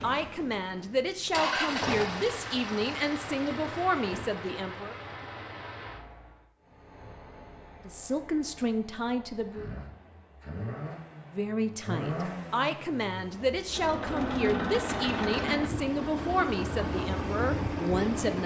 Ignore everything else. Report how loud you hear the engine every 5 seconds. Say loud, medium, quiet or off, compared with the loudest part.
loud, quiet, loud, loud.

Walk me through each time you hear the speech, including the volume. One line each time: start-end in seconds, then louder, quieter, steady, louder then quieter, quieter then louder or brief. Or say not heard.
0.0-5.0 steady
7.8-9.7 brief
11.3-18.4 steady.